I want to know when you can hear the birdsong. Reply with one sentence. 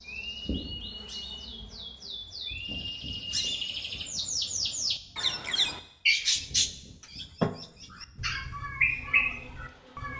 You can hear the birdsong from 0.0 to 10.1 s.